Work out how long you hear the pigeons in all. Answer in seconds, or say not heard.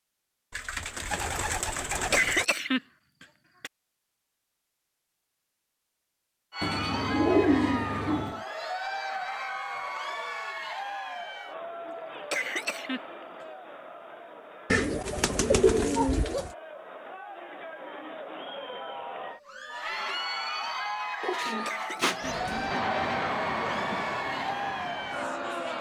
7 s.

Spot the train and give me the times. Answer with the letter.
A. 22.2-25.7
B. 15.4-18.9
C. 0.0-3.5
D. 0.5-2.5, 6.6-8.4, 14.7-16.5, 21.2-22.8
A.